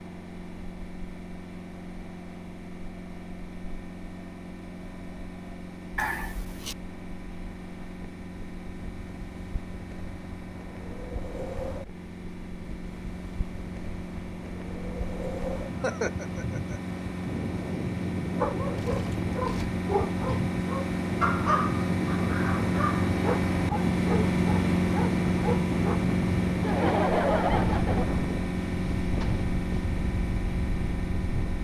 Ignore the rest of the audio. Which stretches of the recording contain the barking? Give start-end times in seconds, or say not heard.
18.4-26.1.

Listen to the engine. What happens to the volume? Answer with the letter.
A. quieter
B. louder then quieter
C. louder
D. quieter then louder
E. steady
C.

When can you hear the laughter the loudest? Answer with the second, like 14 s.
27 s.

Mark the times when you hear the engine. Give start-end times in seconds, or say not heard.
0.0-31.5.